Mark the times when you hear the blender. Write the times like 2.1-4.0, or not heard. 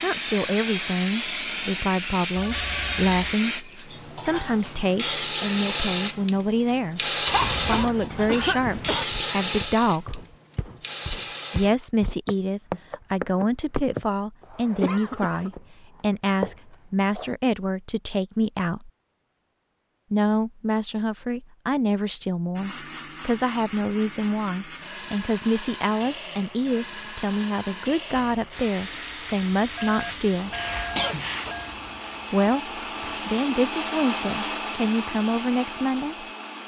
22.6-36.6.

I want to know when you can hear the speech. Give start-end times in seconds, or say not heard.
0.0-10.2, 11.5-18.9, 20.1-30.5, 32.3-36.2.